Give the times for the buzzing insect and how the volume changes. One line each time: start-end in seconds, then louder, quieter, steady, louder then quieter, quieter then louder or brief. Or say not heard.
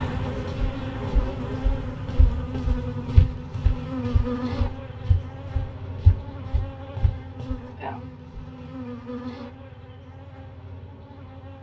0.0-11.5 quieter.